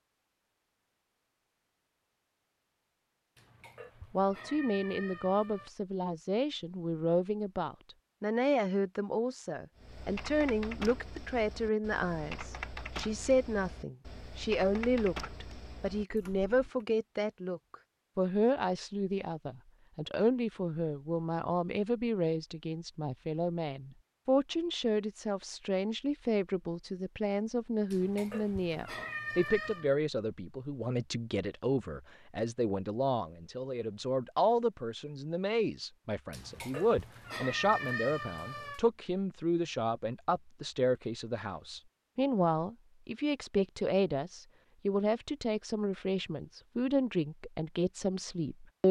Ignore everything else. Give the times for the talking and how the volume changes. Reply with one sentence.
You can hear the talking from 4.1 to 48.8 s, at a steady volume.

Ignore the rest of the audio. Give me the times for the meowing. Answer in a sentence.
You can hear the meowing from 3.4 to 5.7 s, from 27.9 to 29.9 s and from 36.3 to 38.9 s.